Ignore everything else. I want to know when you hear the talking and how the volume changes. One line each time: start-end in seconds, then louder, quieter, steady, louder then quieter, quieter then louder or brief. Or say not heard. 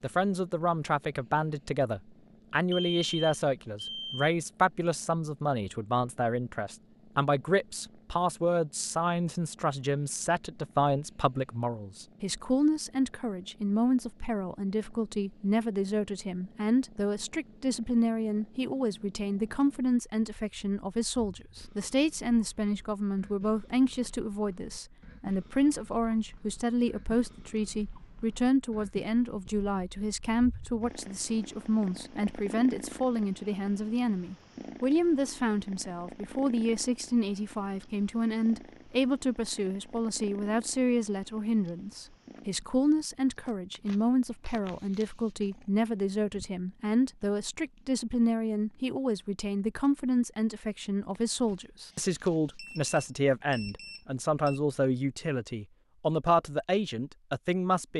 0.0-57.9 steady.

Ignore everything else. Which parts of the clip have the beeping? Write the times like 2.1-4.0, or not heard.
2.7-4.3, 52.5-54.6.